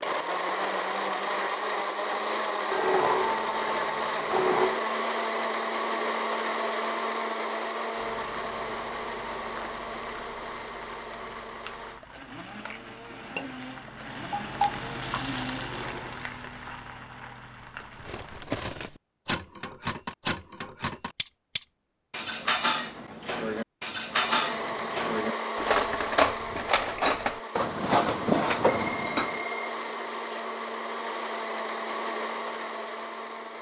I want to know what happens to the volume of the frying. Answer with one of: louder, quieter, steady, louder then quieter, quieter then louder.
louder then quieter.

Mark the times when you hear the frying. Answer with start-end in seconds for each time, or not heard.
7.9-18.5.